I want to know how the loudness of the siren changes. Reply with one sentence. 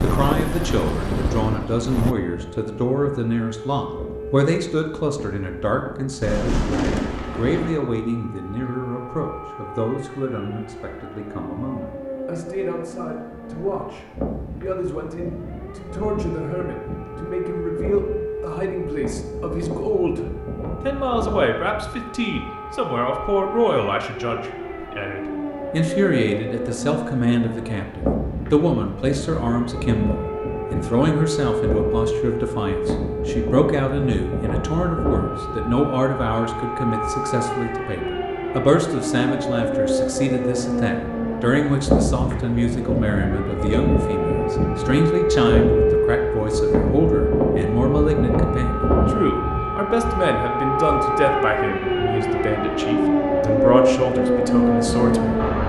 The loudness of the siren goes up.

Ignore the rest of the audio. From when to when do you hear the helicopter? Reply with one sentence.
You can hear the helicopter from 0.0 to 2.1 s.